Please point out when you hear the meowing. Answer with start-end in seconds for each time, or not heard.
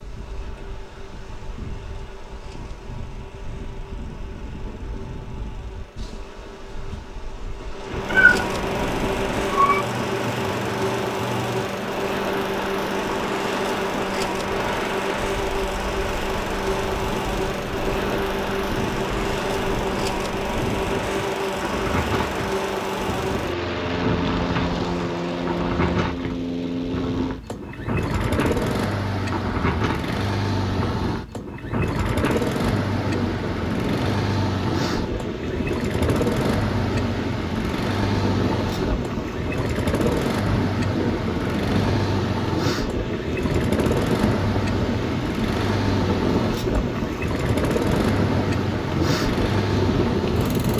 8.1-9.8.